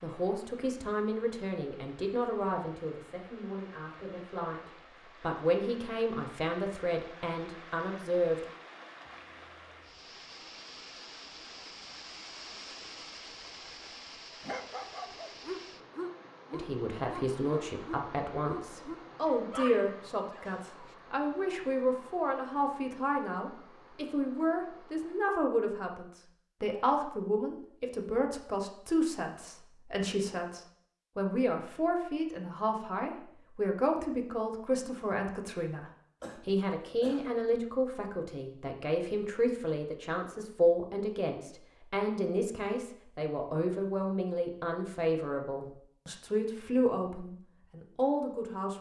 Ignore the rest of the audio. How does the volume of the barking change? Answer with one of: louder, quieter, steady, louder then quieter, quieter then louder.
steady.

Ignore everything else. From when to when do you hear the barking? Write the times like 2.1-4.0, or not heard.
14.4-20.9.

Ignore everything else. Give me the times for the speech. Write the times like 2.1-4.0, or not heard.
0.0-8.4, 16.5-48.7.